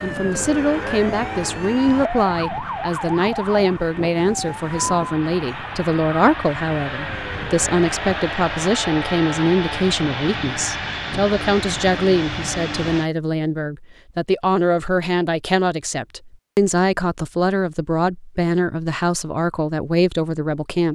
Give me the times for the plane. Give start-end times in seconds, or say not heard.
0.0-13.1.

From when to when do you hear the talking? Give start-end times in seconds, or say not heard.
0.0-20.8.